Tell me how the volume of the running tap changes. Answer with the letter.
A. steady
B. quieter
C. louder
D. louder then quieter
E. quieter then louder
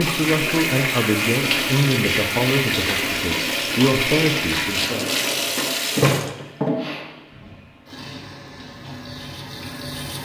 B.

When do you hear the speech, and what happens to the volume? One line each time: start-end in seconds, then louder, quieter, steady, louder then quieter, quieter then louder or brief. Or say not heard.
0.0-5.1 steady.